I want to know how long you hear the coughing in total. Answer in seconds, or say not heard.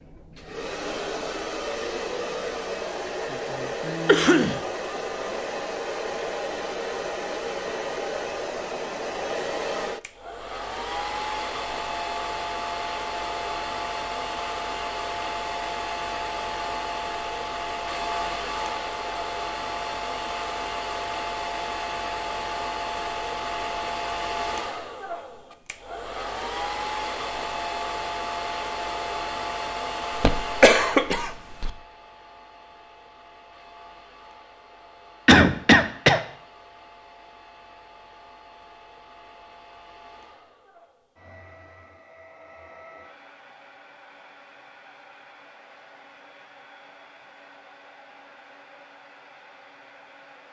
3 s.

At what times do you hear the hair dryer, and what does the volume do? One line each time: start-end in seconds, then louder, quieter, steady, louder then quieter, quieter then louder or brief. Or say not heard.
0.0-50.4 quieter.